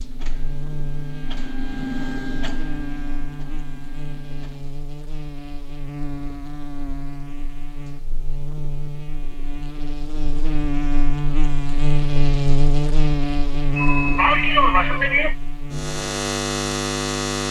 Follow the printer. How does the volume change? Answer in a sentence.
The volume of the printer goes up, then down.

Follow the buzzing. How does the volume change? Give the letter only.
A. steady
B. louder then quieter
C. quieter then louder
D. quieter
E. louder
E.